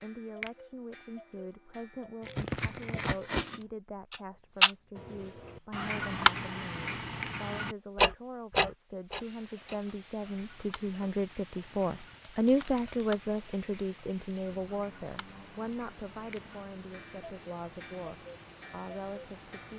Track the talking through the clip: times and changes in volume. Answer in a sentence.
The talking can be heard from 0.0 to 19.7 s, getting louder then quieter.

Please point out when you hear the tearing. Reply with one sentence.
The tearing can be heard from 2.2 to 3.6 s and from 12.1 to 13.0 s.